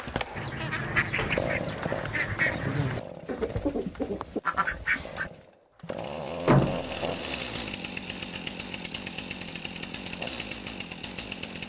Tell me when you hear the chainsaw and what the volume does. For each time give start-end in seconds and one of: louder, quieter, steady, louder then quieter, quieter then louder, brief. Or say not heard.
0.0-11.6 quieter then louder.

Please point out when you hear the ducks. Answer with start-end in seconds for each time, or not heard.
0.3-5.3.